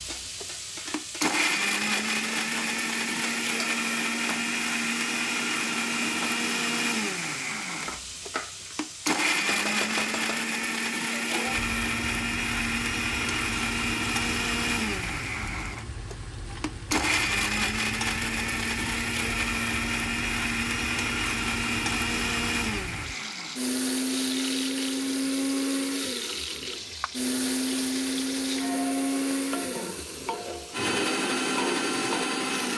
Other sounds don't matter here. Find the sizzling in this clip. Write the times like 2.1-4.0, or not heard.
0.0-32.7.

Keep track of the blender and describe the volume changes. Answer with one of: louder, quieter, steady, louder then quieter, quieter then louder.
steady.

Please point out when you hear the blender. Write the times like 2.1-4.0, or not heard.
0.0-32.7.